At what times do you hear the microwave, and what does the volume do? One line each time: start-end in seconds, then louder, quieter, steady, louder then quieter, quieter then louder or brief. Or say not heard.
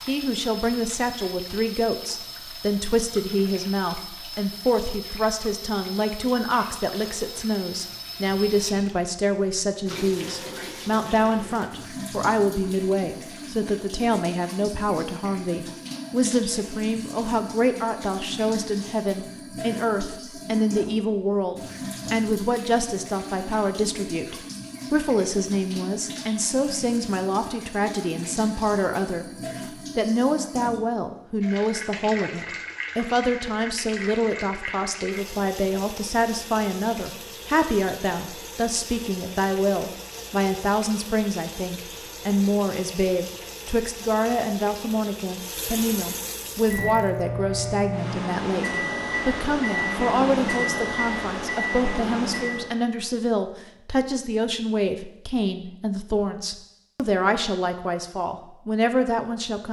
46.5-52.9 steady.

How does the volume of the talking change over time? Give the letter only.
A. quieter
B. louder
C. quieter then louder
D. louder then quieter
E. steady
E.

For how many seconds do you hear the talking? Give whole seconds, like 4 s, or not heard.
59 s.